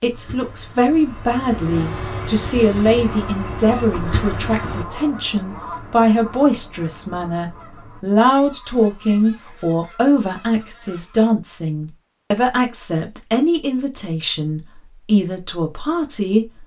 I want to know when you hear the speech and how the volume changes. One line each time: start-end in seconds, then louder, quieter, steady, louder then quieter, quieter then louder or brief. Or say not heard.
0.0-16.6 steady.